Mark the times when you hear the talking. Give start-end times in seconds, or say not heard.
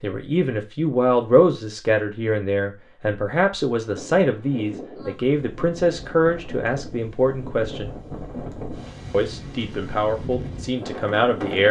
0.0-7.9, 9.1-11.6.